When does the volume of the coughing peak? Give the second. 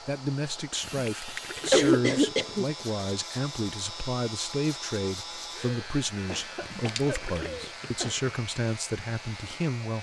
2 s.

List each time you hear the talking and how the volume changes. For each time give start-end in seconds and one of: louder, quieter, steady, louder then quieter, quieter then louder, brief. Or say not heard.
0.1-9.9 steady.